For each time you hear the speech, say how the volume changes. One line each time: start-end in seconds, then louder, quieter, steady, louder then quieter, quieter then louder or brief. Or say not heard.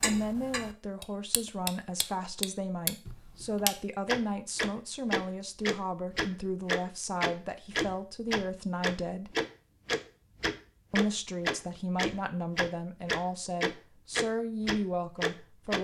0.0-9.3 steady
10.9-15.7 steady.